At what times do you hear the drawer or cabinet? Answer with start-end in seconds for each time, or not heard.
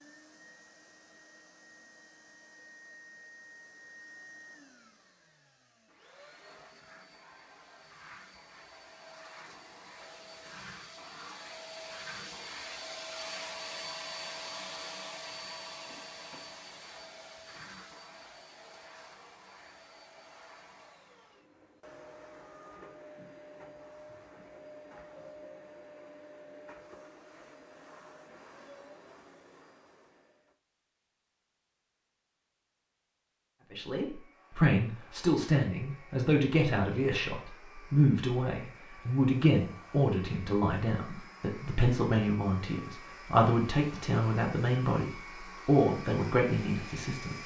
not heard.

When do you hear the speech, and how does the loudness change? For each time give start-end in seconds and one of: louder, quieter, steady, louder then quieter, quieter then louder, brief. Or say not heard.
33.7-47.4 steady.